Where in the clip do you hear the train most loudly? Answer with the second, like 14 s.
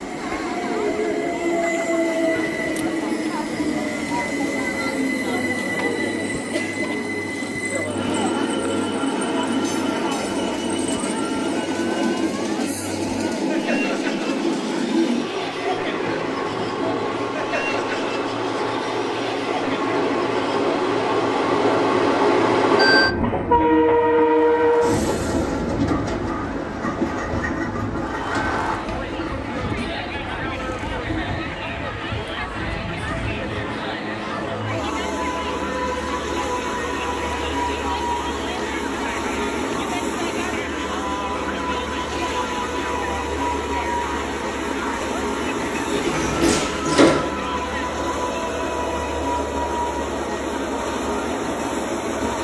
24 s.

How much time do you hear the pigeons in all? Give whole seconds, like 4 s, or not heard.
not heard.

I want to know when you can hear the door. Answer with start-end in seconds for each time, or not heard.
45.9-47.3.